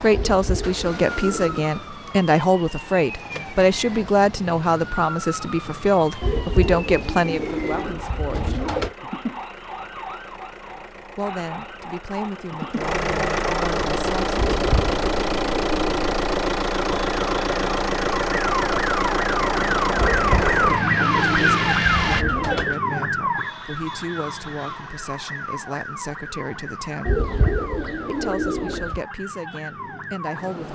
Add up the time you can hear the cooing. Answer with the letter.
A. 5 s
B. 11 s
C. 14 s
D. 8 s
B.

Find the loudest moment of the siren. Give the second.
21 s.